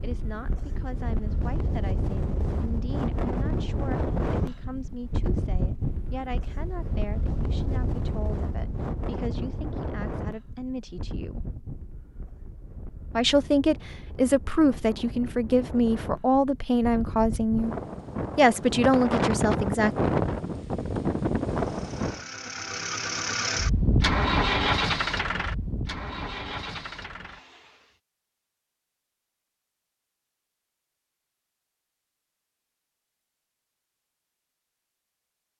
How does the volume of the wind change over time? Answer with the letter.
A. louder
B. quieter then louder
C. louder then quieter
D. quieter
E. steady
B.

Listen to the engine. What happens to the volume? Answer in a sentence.
The loudness of the engine goes up, then down.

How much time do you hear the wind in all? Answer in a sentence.
You can hear the wind for 22 seconds altogether.